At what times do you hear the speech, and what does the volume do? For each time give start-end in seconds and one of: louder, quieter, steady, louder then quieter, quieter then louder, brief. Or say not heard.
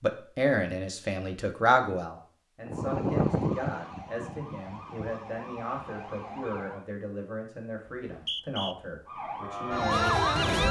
0.0-10.6 quieter.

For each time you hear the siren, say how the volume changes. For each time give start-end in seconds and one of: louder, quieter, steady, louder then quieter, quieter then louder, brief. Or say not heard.
2.6-6.8 quieter
9.1-10.6 brief.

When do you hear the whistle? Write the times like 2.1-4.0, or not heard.
7.8-8.8.